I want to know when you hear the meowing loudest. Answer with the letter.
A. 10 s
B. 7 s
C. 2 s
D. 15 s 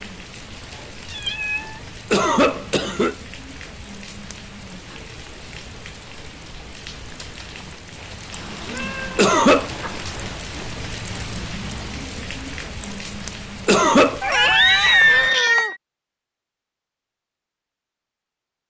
D.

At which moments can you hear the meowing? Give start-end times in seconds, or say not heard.
1.1-1.8, 8.4-10.4, 14.2-15.8.